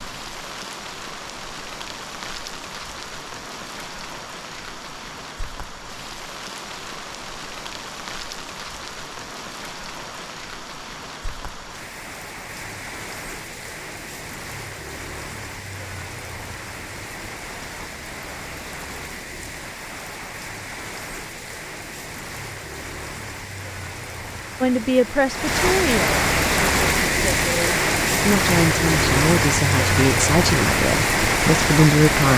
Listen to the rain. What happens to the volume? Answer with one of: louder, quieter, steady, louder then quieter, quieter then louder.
louder.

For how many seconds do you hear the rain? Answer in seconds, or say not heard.
32 s.